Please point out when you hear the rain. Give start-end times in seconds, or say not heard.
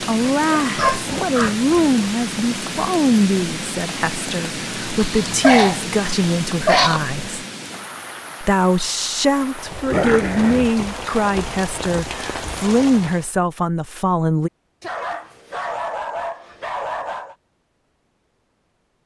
0.0-13.3.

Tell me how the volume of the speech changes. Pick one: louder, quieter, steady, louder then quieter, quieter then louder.
steady.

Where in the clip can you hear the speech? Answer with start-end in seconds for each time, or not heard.
0.1-7.5, 8.4-14.5.